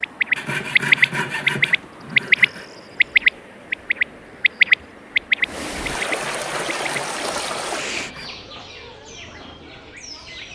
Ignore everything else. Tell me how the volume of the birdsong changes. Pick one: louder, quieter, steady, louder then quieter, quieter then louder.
quieter.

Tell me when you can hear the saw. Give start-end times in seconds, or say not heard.
0.3-2.6, 5.8-8.3.